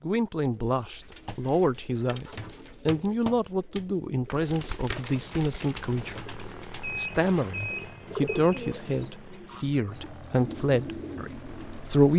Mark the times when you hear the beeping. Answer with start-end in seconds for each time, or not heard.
6.8-8.8.